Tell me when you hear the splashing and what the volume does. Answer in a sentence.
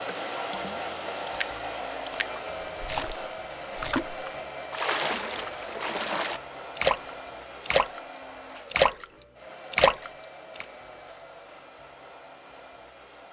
The splashing can be heard from 0.1 to 10.7 s, getting louder.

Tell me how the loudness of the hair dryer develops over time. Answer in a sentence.
The loudness of the hair dryer goes down.